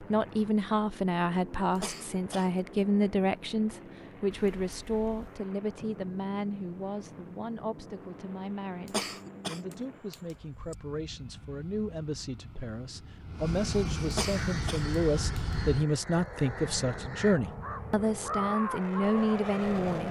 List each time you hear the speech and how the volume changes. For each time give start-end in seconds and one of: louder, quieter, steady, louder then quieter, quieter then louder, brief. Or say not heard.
0.0-20.0 quieter then louder.